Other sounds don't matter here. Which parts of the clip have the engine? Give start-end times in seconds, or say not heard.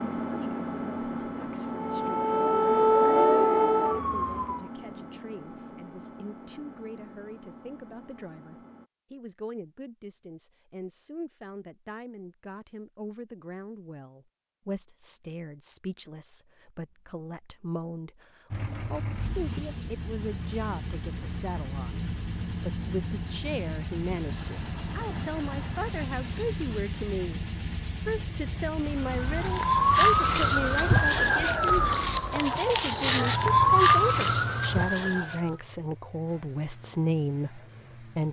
0.0-8.9, 18.5-38.2.